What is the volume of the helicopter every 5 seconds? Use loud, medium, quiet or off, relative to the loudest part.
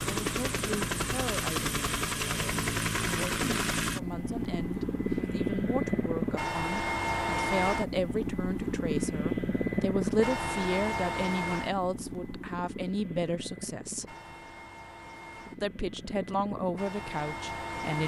loud, loud, medium, medium.